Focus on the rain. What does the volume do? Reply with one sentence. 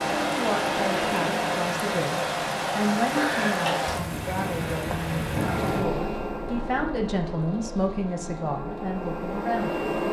The volume of the rain goes down.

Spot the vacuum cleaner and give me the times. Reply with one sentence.
You can hear the vacuum cleaner from 0.0 to 1.7 s and from 5.2 to 10.0 s.